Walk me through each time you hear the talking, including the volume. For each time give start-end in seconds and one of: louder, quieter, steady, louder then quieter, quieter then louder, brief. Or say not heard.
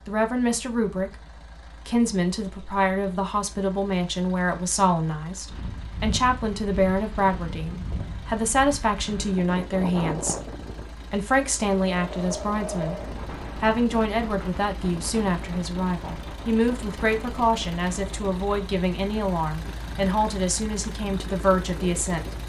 0.1-22.4 steady.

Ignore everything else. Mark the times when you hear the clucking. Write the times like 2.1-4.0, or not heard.
not heard.